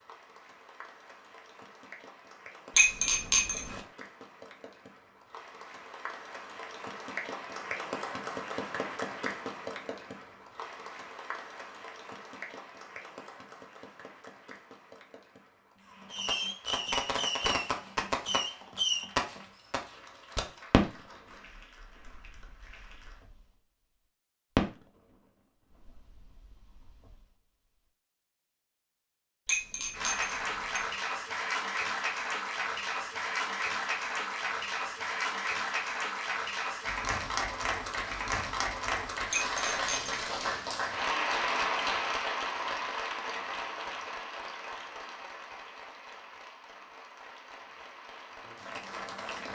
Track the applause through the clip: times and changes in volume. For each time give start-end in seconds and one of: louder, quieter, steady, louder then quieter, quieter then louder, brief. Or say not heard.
0.0-23.2 louder then quieter
29.9-49.5 quieter.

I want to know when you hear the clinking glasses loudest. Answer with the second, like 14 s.
3 s.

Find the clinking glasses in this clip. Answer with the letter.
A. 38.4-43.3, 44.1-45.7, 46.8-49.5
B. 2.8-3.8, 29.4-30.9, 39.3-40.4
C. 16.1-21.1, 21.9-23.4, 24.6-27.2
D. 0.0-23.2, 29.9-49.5
B.